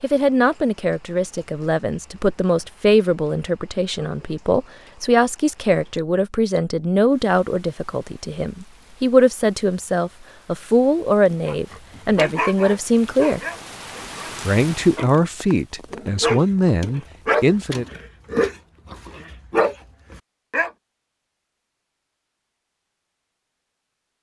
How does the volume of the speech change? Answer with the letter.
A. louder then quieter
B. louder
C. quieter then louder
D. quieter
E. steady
E.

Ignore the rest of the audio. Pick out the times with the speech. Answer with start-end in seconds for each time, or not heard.
0.0-13.4, 14.4-17.9.